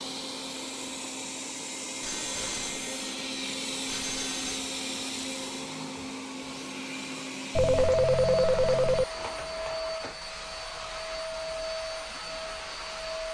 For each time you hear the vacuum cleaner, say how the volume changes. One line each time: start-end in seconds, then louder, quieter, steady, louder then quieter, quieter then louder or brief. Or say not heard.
0.0-13.2 steady.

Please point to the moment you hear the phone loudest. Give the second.
8 s.